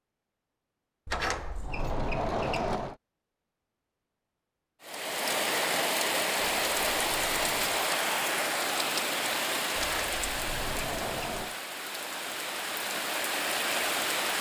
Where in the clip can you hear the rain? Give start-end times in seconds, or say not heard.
4.8-14.3.